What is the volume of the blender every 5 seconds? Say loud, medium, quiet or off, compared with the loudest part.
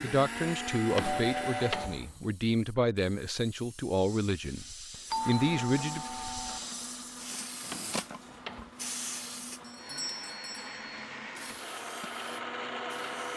loud, medium, loud.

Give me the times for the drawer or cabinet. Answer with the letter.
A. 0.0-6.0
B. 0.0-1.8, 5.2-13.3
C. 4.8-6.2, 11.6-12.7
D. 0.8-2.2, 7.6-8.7
D.